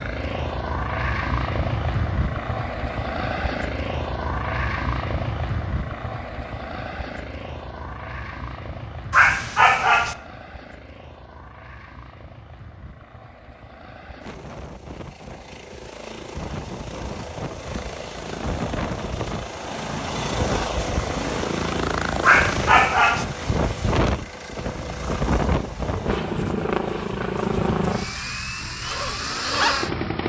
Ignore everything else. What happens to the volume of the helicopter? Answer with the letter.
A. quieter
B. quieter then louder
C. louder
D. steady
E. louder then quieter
B.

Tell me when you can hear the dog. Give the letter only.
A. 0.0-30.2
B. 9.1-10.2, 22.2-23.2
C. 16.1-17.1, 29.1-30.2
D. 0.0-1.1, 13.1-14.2
B.